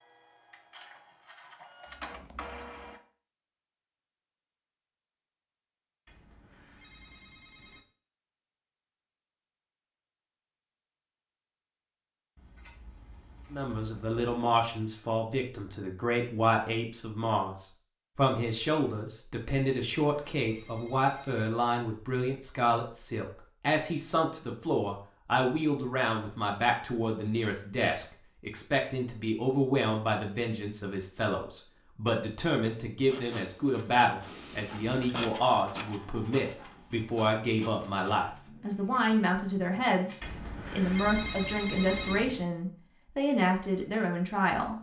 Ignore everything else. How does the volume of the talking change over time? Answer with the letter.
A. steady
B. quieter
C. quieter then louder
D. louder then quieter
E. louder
A.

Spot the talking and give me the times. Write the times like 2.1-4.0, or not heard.
13.5-44.7.